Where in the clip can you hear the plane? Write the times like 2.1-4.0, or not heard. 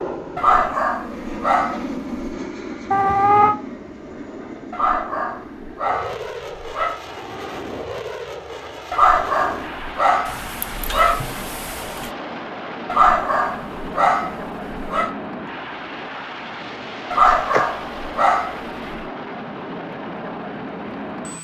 0.0-21.3.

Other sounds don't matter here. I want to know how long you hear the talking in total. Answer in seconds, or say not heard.
not heard.